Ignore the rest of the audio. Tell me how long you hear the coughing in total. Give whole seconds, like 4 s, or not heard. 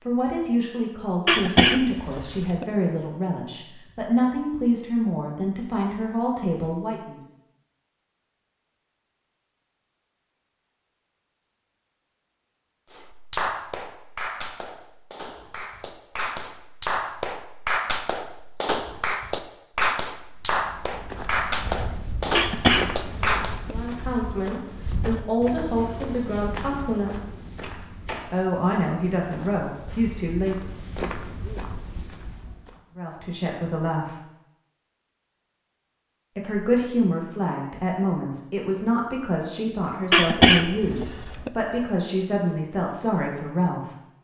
4 s.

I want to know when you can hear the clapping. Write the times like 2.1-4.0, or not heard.
12.9-23.6.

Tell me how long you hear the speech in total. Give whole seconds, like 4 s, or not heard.
22 s.